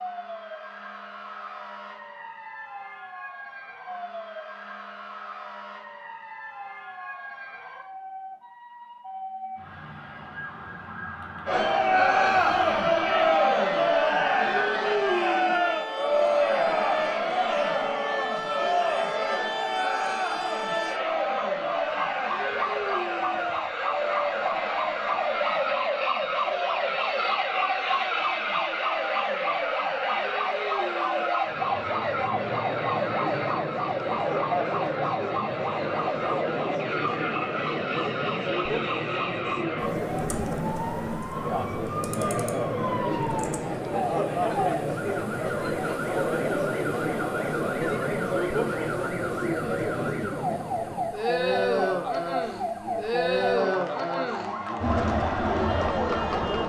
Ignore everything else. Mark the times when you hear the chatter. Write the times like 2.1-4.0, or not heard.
11.4-56.6.